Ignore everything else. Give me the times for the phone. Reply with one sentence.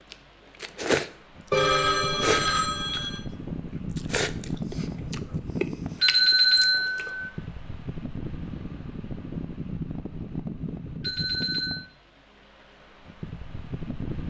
You can hear the phone from 1.5 to 3.2 s, from 6.0 to 7.3 s and from 11.0 to 11.8 s.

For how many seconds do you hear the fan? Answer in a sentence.
The fan can be heard for 14 seconds in total.